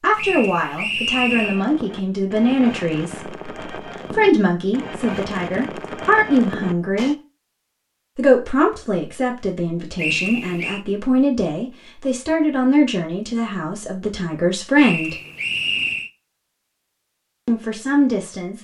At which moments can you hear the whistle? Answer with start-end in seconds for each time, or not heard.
0.1-1.6, 9.9-10.8, 14.8-16.1.